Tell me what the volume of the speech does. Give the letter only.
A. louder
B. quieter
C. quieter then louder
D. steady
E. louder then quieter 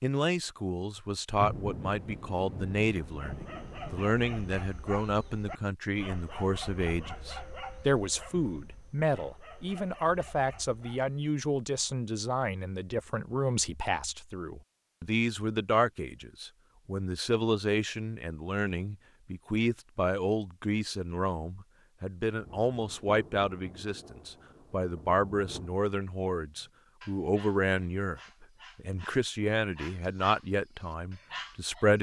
D.